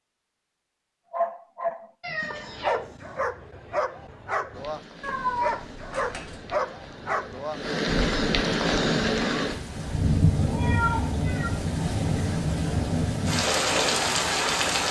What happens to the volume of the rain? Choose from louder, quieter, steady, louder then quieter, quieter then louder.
louder.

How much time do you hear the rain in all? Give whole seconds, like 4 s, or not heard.
10 s.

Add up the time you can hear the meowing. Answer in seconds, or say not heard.
3 s.